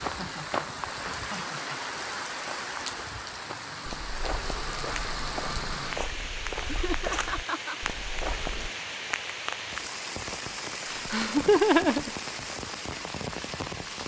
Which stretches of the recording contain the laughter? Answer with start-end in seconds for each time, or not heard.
0.1-1.8, 6.7-7.8, 10.8-12.1.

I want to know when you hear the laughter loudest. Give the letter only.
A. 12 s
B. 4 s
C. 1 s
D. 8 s
A.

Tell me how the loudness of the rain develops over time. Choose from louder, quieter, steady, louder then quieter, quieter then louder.
steady.